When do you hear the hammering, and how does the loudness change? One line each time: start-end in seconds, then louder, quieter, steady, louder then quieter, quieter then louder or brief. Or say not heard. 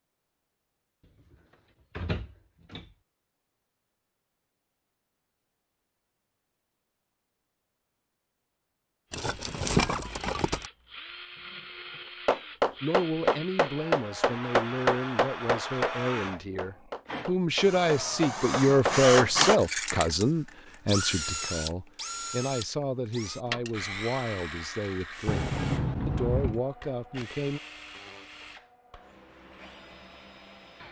12.2-19.6 quieter then louder.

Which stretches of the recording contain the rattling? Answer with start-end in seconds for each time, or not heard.
9.1-10.7, 23.4-23.9.